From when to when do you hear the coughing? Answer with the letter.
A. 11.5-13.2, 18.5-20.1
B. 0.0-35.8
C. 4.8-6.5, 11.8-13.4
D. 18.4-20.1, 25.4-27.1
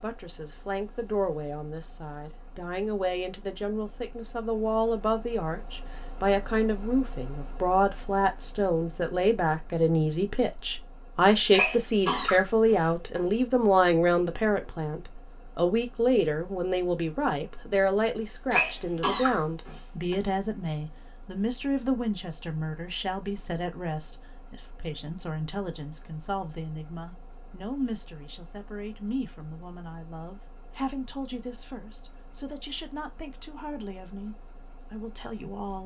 A.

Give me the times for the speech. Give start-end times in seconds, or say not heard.
0.0-35.8.